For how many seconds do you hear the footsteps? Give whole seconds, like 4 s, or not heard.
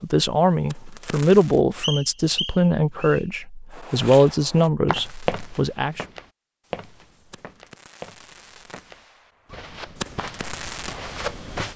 8 s.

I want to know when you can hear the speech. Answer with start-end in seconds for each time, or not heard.
0.0-6.0.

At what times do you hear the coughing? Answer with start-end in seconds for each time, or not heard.
not heard.